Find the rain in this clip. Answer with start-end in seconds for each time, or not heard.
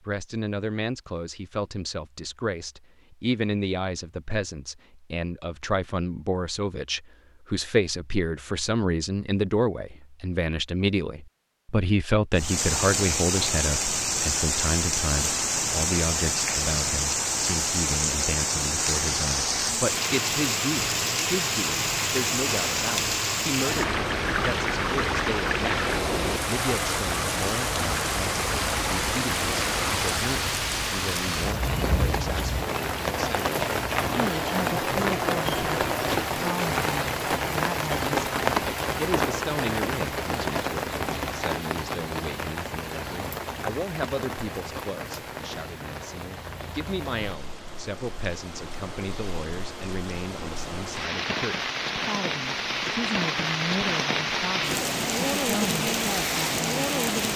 12.3-57.3.